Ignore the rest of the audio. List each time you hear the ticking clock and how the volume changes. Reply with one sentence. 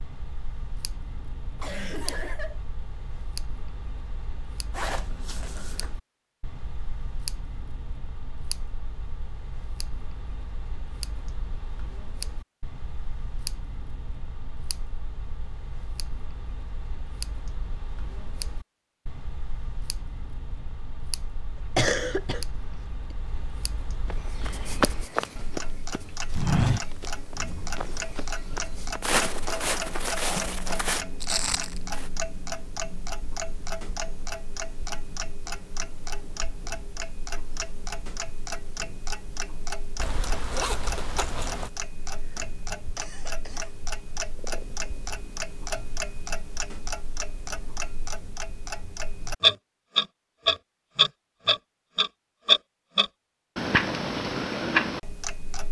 The ticking clock can be heard from 0.0 to 55.6 s, getting louder.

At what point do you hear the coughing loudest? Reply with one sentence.
The loudest moment of the coughing is at 22 seconds.